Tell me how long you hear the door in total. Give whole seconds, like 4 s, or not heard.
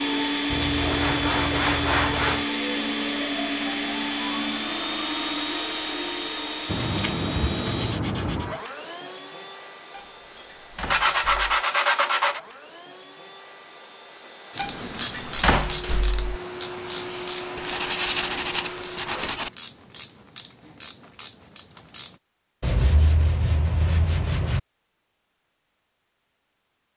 3 s.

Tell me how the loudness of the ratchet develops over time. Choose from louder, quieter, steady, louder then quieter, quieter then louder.
quieter.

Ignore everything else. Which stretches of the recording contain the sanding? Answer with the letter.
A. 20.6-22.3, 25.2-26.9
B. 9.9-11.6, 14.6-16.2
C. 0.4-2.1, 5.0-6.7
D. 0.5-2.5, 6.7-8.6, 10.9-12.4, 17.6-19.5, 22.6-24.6
D.